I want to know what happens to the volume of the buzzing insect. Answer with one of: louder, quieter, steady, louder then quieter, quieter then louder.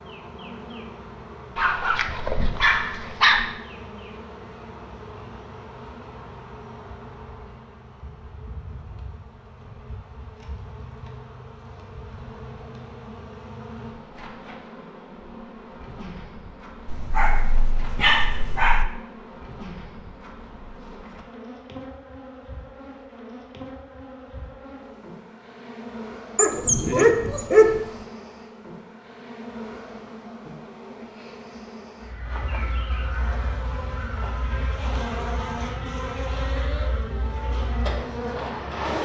louder.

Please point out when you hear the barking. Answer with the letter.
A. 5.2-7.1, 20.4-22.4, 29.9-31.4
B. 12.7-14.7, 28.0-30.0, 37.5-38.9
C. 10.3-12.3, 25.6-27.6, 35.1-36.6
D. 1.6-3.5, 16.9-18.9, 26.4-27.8
D.